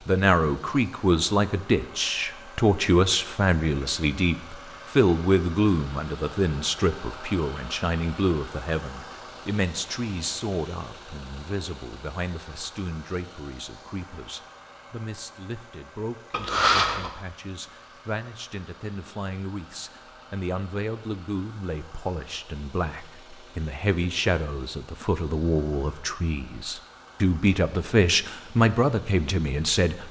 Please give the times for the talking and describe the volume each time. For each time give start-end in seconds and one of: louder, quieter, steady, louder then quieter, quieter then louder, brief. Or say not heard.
0.1-30.0 quieter then louder.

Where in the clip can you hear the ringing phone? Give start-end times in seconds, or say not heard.
16.3-17.1.